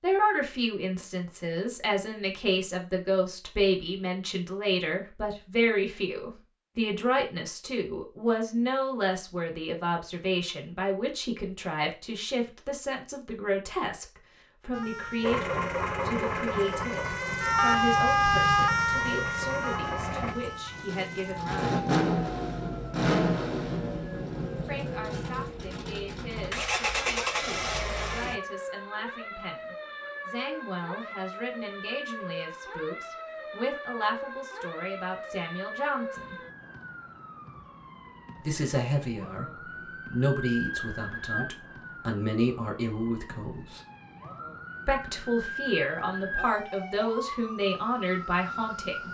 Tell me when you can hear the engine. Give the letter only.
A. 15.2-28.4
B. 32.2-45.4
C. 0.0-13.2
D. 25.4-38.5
A.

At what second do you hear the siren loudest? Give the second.
18 s.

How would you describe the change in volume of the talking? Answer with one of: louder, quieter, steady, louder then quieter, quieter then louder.
quieter then louder.